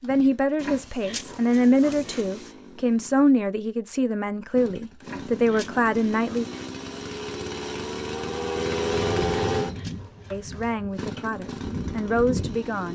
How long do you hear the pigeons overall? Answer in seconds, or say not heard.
4 s.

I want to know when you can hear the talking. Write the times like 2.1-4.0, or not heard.
0.0-6.5, 10.3-12.9.